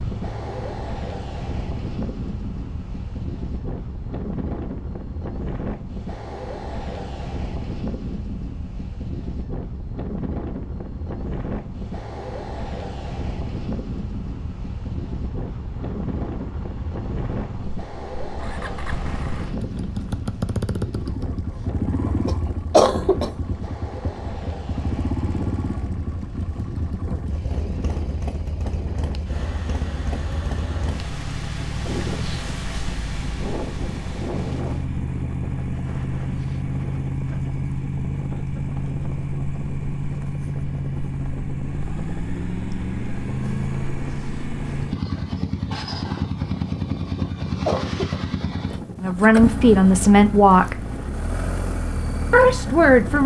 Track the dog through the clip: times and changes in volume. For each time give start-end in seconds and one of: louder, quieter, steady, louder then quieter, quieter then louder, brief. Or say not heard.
not heard.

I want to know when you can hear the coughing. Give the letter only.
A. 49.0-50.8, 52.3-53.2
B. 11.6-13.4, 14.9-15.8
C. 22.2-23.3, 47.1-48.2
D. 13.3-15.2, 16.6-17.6
C.